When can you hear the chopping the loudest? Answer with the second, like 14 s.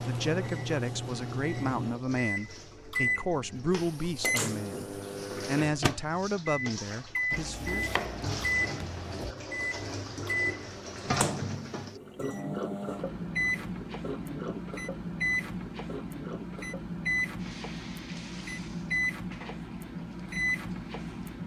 8 s.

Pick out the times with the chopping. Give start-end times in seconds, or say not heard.
7.3-9.3.